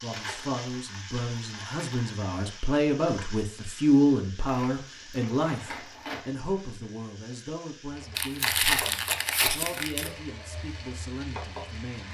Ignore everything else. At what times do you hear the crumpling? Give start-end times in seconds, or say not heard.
0.1-2.1, 4.5-6.3, 8.2-10.1.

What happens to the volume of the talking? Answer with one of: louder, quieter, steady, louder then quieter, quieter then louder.
louder then quieter.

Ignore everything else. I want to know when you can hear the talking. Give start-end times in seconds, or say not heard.
0.0-12.1.